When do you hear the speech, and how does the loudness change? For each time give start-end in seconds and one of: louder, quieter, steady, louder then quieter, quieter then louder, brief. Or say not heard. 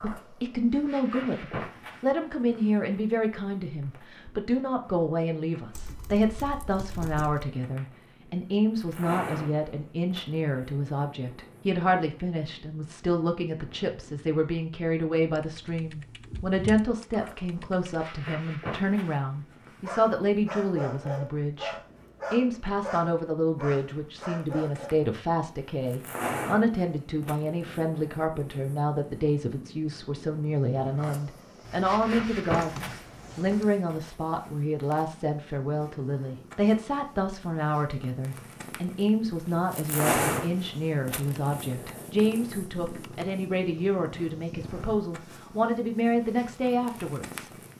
0.0-47.7 steady.